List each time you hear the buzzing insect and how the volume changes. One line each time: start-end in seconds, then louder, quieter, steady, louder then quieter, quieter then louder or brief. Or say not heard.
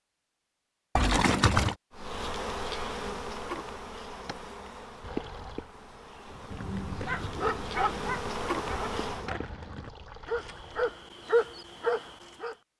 1.9-9.3 quieter then louder.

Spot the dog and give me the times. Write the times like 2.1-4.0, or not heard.
6.3-12.6.